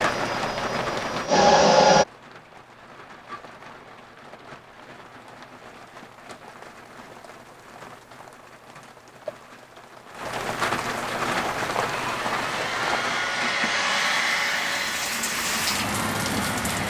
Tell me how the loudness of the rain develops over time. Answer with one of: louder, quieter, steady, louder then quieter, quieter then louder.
quieter then louder.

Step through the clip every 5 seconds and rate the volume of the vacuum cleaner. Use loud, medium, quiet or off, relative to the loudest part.
loud, off, medium, quiet.